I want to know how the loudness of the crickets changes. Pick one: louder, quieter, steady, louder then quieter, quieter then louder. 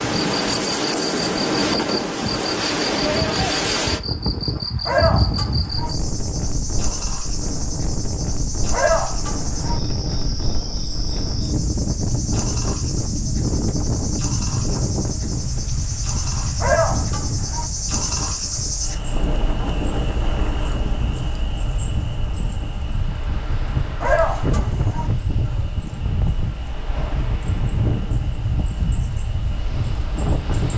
quieter.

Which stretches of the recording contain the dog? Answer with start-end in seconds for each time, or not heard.
4.8-6.0, 8.7-9.8, 16.6-17.7, 24.0-25.1.